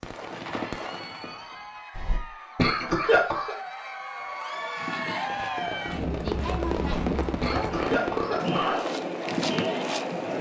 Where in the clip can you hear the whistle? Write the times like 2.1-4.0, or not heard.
not heard.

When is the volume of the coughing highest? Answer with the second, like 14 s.
3 s.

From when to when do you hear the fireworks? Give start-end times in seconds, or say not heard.
0.0-1.8, 5.2-8.4.